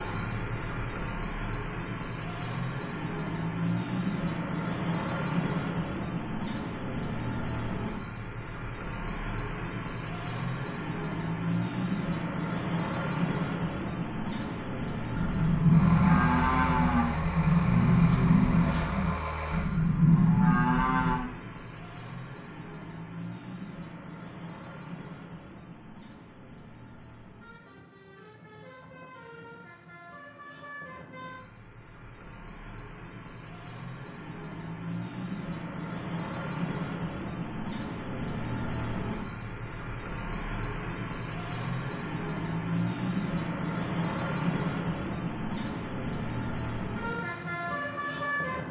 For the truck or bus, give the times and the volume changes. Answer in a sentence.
The truck or bus can be heard from 0.0 to 48.6 s, getting quieter then louder.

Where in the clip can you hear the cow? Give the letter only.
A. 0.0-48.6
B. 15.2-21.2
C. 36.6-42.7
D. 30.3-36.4
B.